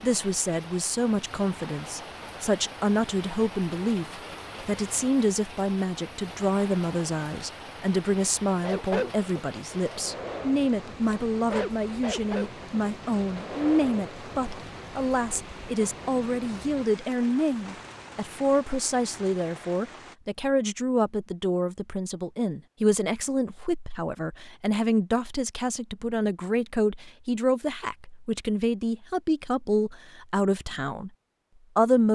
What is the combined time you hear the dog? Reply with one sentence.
The dog can be heard for 6 seconds in total.